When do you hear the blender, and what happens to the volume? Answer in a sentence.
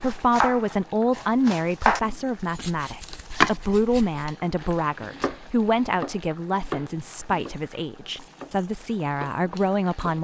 The blender can't be heard in this clip.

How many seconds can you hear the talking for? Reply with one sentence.
You can hear the talking for 10 seconds altogether.